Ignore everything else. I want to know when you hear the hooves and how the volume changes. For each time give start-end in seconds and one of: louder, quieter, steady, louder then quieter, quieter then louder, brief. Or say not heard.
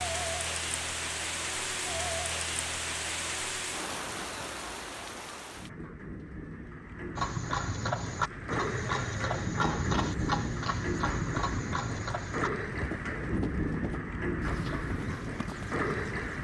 7.2-16.3 quieter.